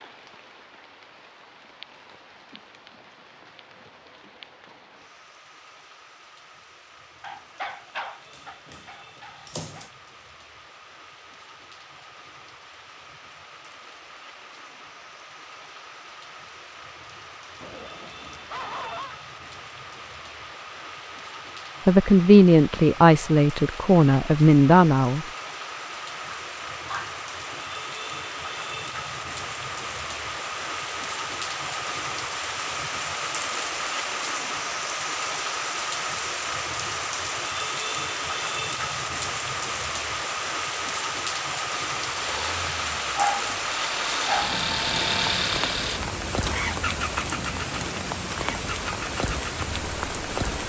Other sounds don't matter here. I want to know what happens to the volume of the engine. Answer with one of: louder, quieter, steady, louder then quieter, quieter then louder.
louder then quieter.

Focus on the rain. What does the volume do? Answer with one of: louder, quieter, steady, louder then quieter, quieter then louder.
louder.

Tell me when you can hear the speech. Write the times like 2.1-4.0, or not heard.
21.9-25.2.